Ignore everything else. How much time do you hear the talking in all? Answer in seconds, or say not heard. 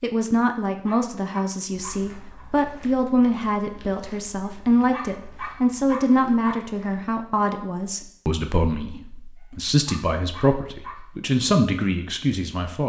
13 s.